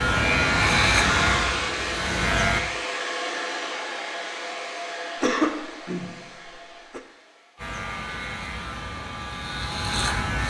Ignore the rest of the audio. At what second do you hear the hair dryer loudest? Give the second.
1 s.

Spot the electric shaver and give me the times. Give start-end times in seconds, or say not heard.
0.0-2.6, 7.5-10.4.